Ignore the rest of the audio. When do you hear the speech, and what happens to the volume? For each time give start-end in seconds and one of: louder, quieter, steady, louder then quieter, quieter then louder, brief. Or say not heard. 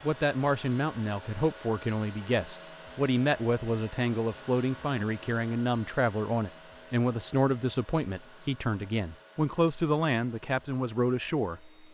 0.0-11.7 steady.